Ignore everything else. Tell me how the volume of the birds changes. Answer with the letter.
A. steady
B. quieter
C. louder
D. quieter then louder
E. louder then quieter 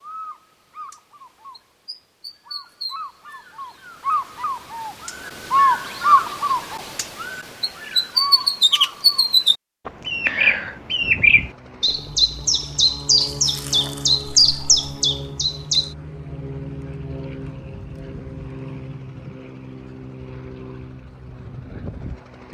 C.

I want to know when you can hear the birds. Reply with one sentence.
You can hear the birds from 0.0 to 15.9 s.